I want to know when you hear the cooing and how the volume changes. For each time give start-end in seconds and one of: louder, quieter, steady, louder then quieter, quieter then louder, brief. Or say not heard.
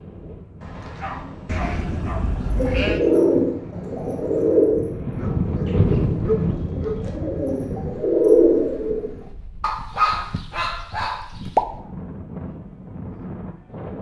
2.5-9.2 quieter then louder.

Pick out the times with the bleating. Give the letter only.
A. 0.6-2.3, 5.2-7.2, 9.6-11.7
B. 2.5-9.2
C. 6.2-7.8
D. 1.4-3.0
D.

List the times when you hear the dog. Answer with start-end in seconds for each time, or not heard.
0.6-2.3, 5.2-7.2, 9.6-11.7.